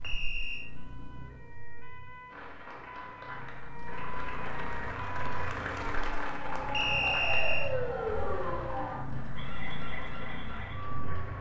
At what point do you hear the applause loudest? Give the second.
6 s.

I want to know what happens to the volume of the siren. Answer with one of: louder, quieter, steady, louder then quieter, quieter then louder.
louder then quieter.